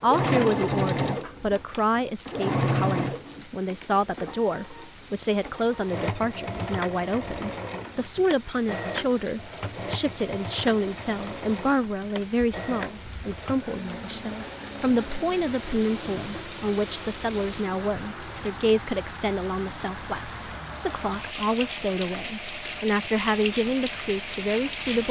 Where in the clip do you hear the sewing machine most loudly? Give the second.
1 s.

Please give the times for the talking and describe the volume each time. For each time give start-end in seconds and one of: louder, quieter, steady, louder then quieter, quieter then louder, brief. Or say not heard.
0.0-25.0 steady.